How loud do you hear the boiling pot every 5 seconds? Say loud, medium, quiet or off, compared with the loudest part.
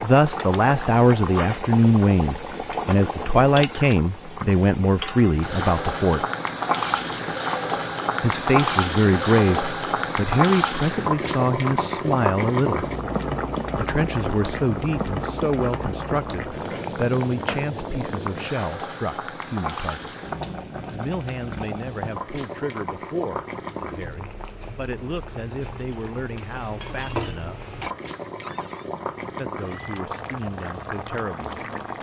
medium, loud, loud, medium, medium, medium, medium.